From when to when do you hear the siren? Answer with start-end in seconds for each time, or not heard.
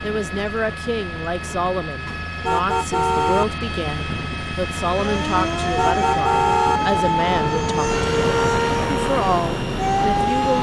4.8-10.5.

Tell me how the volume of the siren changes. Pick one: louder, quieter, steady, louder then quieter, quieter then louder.
steady.